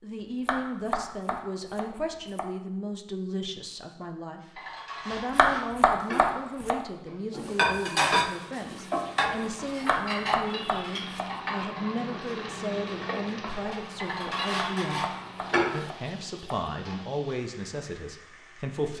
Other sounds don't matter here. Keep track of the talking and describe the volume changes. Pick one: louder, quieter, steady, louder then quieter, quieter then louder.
steady.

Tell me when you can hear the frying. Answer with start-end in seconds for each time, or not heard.
8.2-18.9.